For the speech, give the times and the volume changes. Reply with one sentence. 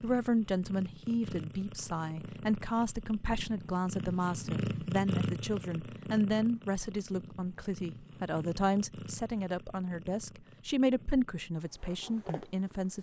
You can hear the speech from 0.0 to 12.9 s, at a steady volume.